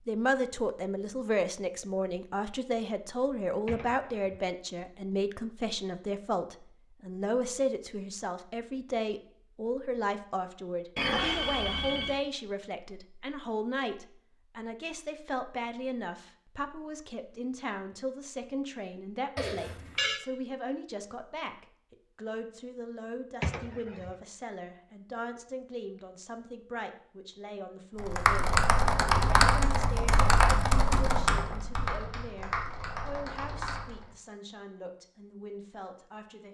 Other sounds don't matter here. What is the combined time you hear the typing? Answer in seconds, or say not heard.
6 s.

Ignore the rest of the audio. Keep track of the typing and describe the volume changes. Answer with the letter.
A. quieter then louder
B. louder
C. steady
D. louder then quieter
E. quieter
E.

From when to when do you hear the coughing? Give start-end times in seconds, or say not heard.
3.6-4.4, 23.4-24.1.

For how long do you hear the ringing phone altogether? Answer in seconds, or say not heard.
2 s.